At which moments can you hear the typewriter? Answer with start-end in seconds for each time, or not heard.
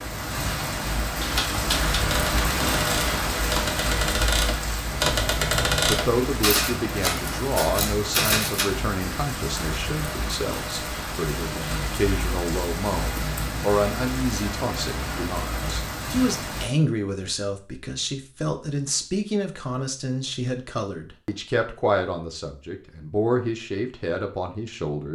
1.2-8.7.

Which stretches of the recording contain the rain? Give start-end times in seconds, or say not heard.
0.0-16.7.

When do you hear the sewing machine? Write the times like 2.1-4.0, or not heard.
not heard.